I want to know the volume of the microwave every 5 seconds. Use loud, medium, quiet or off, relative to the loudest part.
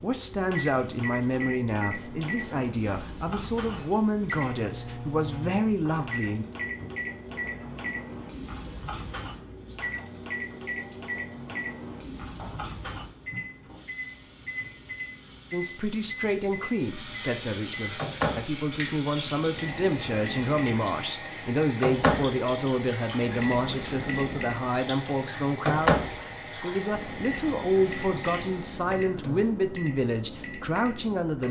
medium, medium, medium, loud, loud, loud, medium.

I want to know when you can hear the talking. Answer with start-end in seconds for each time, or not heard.
0.0-6.5, 15.5-31.4.